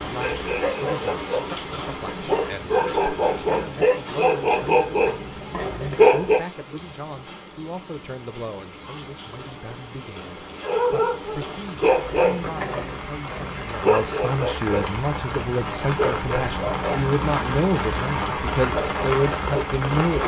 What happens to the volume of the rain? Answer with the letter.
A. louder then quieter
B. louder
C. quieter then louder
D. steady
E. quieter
C.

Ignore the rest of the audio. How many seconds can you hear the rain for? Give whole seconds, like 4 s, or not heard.
20 s.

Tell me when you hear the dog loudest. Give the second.
6 s.